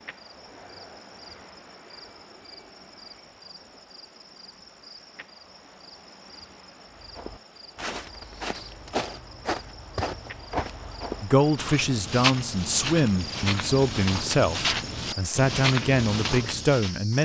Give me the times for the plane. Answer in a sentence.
You can hear the plane from 0.0 to 3.3 s.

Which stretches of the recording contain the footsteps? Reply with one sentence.
The footsteps can be heard from 7.0 to 16.9 s.